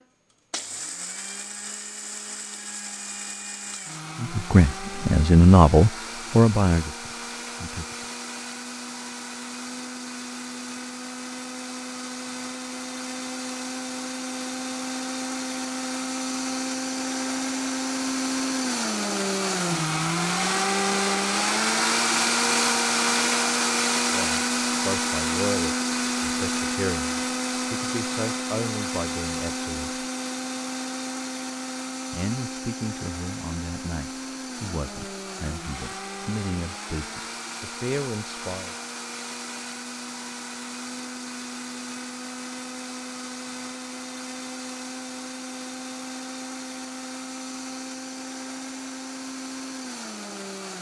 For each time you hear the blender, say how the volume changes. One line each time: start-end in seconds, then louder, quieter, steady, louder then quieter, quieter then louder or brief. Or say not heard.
0.0-50.7 louder then quieter.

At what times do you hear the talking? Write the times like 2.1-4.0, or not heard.
4.2-8.1, 24.1-30.1, 32.1-38.8.